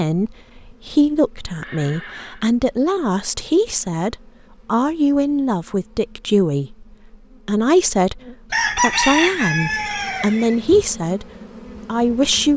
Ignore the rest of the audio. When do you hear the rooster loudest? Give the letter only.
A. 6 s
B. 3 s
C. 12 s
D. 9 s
D.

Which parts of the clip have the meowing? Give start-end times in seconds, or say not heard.
not heard.